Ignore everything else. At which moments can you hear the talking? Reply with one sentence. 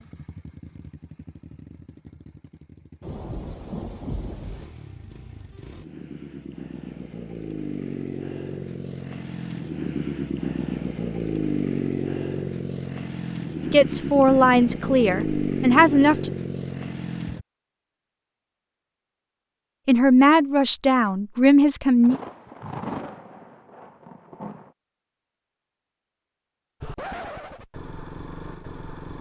The talking can be heard from 13.7 to 16.3 s and from 19.9 to 22.2 s.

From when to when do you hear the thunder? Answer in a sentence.
You can hear the thunder from 3.0 to 4.7 s and from 22.0 to 24.7 s.